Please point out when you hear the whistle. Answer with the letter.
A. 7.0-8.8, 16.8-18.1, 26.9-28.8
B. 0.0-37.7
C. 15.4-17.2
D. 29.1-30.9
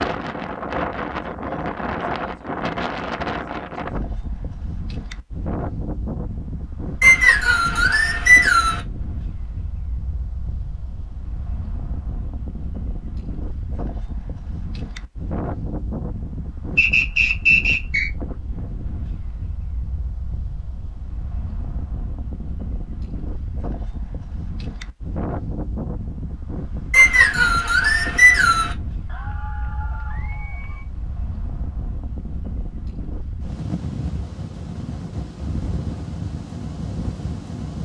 A.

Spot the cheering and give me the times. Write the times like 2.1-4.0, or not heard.
29.1-30.9.